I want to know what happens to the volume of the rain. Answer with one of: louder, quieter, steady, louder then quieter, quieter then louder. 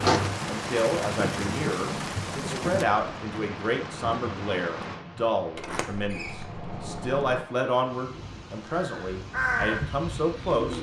quieter.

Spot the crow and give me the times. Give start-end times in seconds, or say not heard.
8.1-10.7.